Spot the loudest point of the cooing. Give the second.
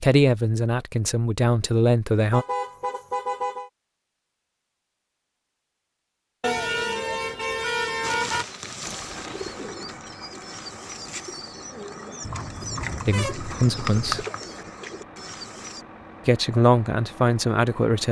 14 s.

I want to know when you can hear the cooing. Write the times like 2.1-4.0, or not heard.
8.0-15.8.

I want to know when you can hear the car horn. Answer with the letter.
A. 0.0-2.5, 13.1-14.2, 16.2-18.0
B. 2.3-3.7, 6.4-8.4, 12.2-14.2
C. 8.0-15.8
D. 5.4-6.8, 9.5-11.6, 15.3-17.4
B.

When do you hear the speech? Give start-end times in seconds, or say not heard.
0.0-2.5, 13.1-14.2, 16.2-18.0.